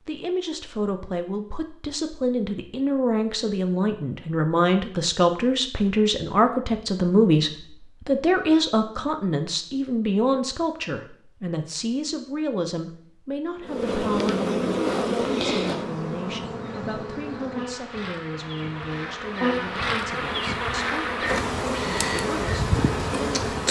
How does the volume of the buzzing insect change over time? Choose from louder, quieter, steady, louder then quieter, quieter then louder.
quieter then louder.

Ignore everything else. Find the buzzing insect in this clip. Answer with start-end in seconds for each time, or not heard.
13.6-23.6.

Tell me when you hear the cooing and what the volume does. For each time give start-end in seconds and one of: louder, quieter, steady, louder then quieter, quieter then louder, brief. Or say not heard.
not heard.